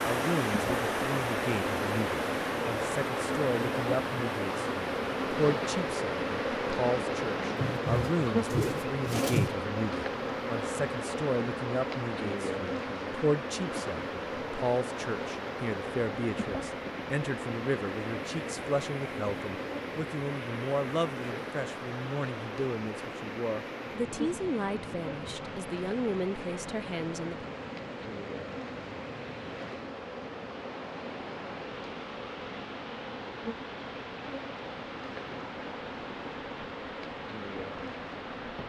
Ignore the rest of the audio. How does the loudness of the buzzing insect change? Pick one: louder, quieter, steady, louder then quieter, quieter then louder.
quieter.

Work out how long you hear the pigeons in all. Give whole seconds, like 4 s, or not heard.
2 s.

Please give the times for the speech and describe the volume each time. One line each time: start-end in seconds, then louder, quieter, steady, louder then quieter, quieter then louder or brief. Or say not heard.
0.0-27.4 steady.